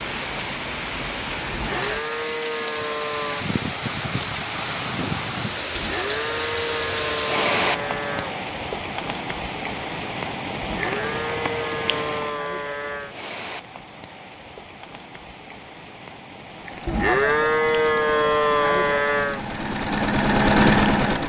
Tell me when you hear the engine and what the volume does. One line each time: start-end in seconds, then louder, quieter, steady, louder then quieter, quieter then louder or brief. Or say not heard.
16.4-21.2 louder.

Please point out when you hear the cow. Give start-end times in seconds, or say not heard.
1.5-3.5, 5.8-8.3, 10.6-13.2, 16.9-19.4.